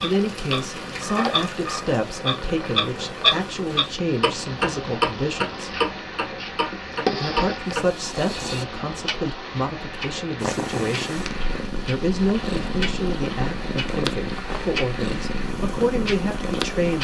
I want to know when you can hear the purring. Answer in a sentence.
You can hear the purring from 0.0 to 8.7 s and from 10.4 to 16.9 s.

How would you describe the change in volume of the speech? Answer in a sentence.
The volume of the speech stays about the same.